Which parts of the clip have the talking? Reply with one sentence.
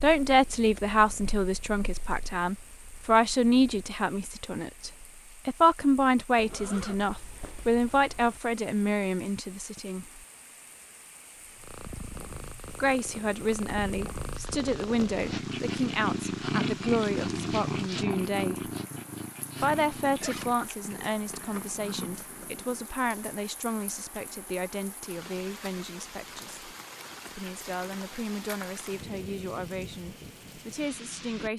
The talking can be heard from 0.0 to 10.1 s, from 12.7 to 18.7 s, from 19.6 to 26.6 s and from 27.4 to 31.5 s.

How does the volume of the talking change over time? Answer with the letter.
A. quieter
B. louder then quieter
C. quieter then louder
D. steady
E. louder
A.